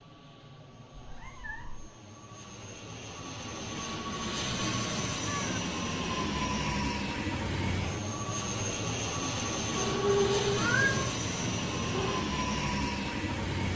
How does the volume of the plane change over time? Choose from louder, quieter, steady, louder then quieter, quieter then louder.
louder.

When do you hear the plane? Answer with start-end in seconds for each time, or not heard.
0.0-13.7.